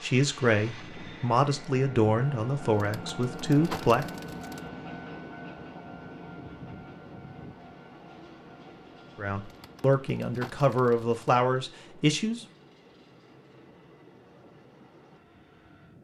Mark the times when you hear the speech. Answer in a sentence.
The speech can be heard from 0.0 to 4.0 s and from 9.2 to 12.4 s.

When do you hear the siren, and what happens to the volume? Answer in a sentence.
The siren can't be heard in this clip.